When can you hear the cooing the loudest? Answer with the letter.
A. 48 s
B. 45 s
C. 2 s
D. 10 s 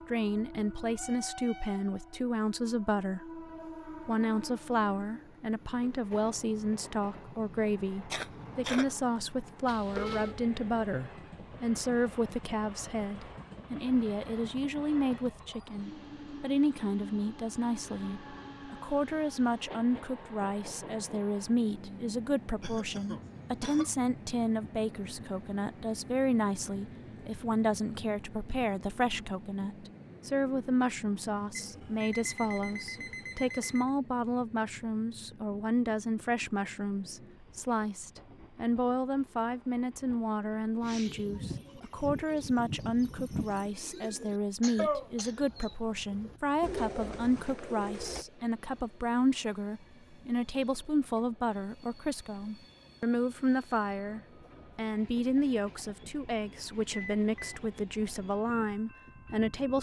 B.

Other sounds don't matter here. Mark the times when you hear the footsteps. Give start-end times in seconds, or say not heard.
not heard.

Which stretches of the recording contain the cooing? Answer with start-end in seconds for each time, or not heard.
40.8-48.2.